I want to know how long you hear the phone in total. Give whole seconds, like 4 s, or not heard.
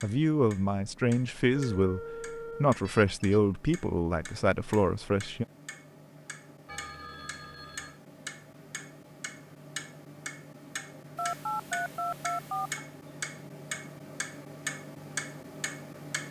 5 s.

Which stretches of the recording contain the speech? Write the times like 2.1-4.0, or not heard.
0.0-2.0, 2.6-5.5.